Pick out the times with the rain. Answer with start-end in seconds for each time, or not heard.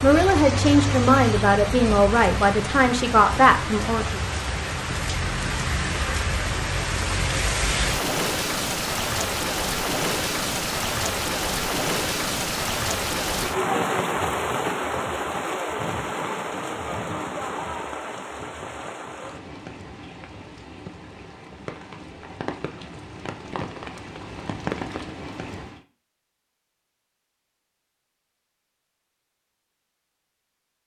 0.0-25.8.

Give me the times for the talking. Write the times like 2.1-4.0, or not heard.
0.0-4.2.